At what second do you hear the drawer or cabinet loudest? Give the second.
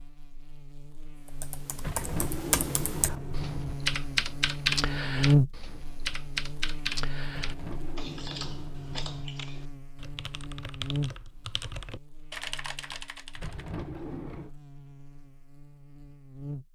2 s.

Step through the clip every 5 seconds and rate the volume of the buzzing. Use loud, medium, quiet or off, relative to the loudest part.
medium, loud, medium, quiet.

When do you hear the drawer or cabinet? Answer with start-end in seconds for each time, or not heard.
1.8-3.8, 7.2-9.2, 13.3-14.6.